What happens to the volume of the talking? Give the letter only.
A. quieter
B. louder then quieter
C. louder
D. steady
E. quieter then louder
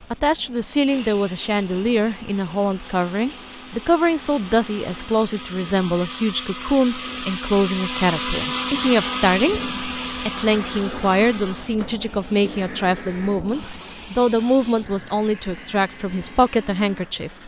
D.